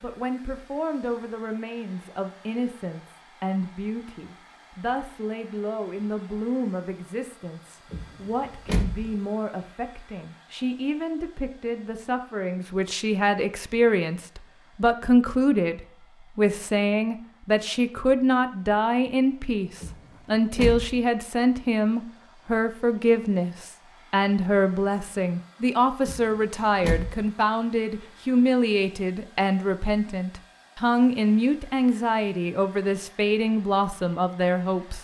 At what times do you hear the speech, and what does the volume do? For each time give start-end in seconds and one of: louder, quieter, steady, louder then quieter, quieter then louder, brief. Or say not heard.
0.0-34.9 louder.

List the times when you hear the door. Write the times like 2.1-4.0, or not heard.
7.9-9.1, 19.8-21.0, 26.1-27.2.